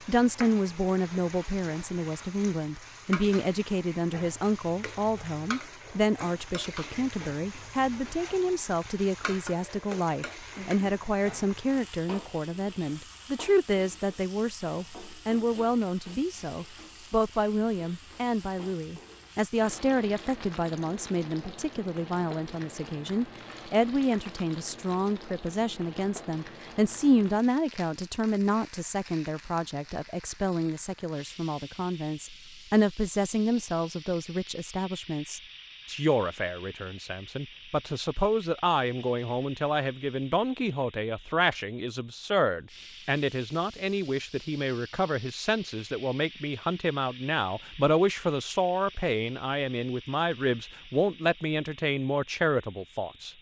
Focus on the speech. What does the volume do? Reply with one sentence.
The volume of the speech stays about the same.